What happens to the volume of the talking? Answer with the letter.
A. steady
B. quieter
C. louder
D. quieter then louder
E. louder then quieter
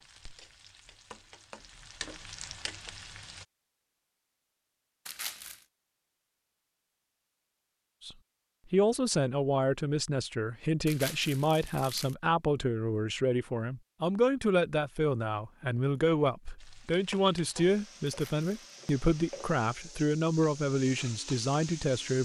A.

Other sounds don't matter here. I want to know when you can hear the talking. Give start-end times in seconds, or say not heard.
8.1-22.2.